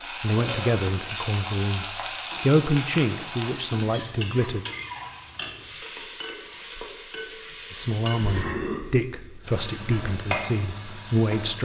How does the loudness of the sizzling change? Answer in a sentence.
The volume of the sizzling stays about the same.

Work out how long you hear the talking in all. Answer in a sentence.
You can hear the talking for 8 seconds altogether.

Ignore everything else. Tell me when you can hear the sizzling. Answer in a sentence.
You can hear the sizzling from 0.0 to 11.6 s.